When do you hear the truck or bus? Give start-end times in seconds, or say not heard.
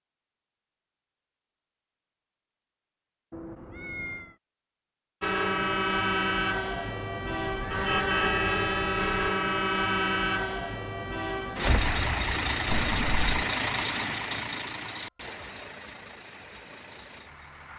5.2-17.7.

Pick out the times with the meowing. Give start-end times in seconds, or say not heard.
3.3-4.3, 7.2-9.3, 12.7-13.4.